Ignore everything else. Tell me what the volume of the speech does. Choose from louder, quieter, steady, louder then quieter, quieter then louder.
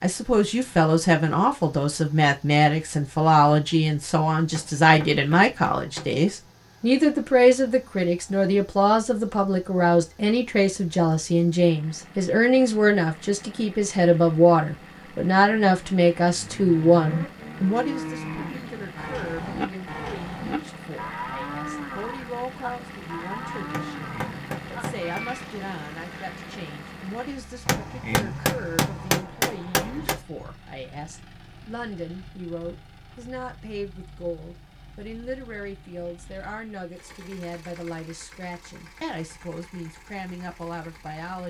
quieter.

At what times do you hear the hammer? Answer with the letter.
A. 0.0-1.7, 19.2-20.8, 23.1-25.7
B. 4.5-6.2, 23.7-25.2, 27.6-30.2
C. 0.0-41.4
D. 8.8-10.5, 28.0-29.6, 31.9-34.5
B.